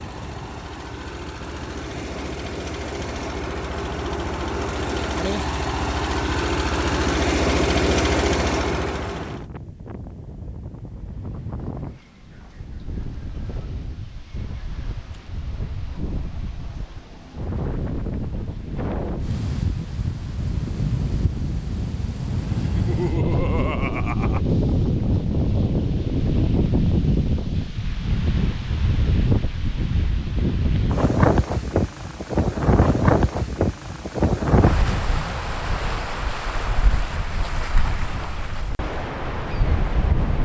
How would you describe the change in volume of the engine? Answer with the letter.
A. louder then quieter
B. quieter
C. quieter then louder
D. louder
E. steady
D.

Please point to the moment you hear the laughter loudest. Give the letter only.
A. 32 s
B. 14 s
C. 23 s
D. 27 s
C.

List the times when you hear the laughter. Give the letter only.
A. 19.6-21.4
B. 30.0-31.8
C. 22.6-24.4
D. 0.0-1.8
C.